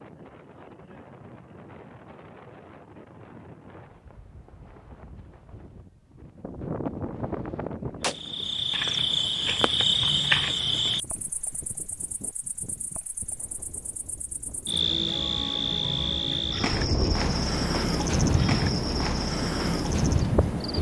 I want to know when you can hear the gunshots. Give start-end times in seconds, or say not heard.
6.4-8.2.